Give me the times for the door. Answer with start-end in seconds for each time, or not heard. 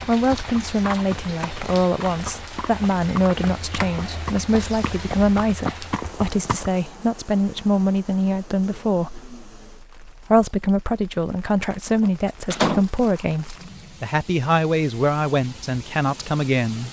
3.3-5.5, 11.7-12.8.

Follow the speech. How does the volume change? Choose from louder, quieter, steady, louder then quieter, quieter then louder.
steady.